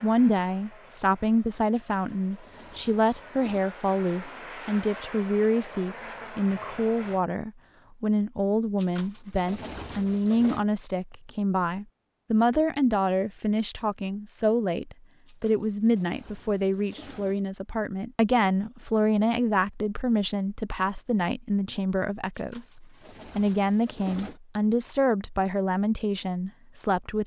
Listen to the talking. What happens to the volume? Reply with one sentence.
The loudness of the talking stays about the same.